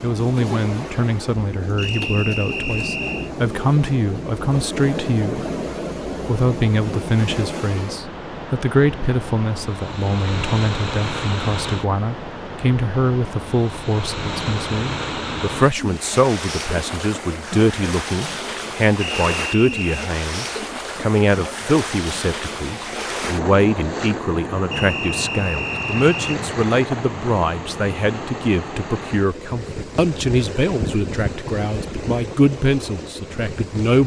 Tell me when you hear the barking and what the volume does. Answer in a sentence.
You can't hear the barking here.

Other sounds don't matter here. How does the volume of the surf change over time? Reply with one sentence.
The volume of the surf stays about the same.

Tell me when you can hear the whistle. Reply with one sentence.
You can hear the whistle from 1.8 to 3.3 s, from 19.0 to 20.1 s and from 24.7 to 26.4 s.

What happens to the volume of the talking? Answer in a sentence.
The volume of the talking stays about the same.